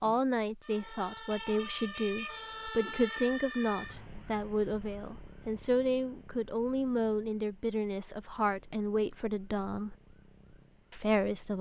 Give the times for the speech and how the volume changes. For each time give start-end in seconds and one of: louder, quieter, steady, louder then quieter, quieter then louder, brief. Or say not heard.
0.0-9.9 steady
10.9-11.5 brief.